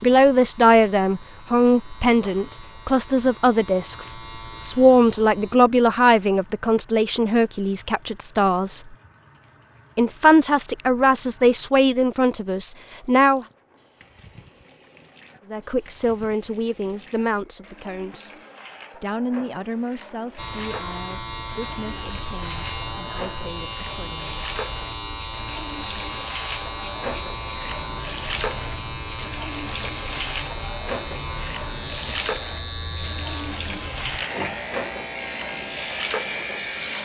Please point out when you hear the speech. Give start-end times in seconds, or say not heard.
0.0-8.8, 9.9-13.4, 15.5-18.4, 18.9-24.4.